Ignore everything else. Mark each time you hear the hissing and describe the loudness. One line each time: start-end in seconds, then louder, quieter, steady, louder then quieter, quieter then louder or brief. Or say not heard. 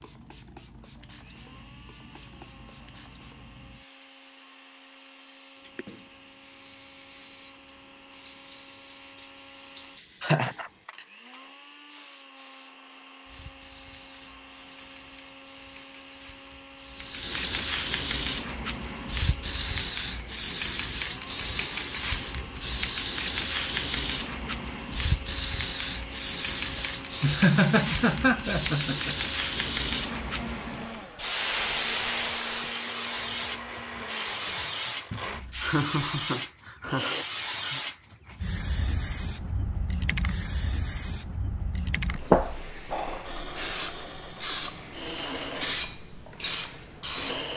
0.0-47.5 louder.